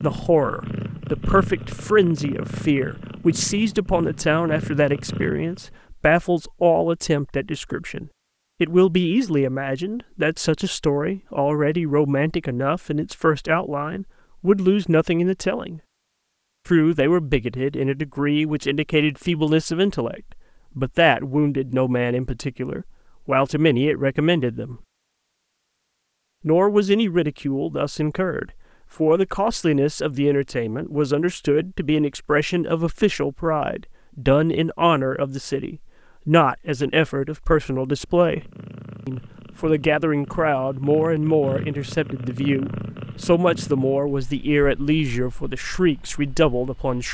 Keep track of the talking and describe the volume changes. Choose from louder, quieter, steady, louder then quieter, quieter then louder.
steady.